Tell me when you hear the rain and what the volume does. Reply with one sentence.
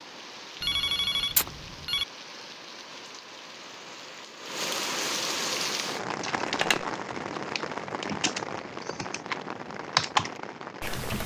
The rain can be heard from 0.0 to 11.2 s, getting louder then quieter.